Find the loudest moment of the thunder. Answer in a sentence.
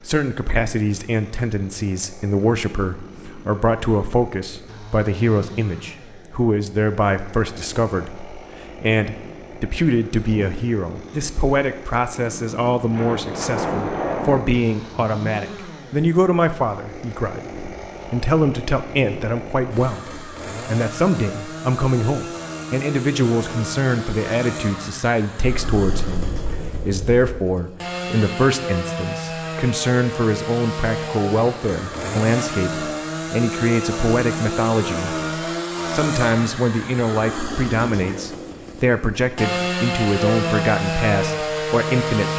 The loudest moment of the thunder is at 14 seconds.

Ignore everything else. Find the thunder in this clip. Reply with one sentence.
You can hear the thunder from 12.9 to 14.4 s and from 25.4 to 27.4 s.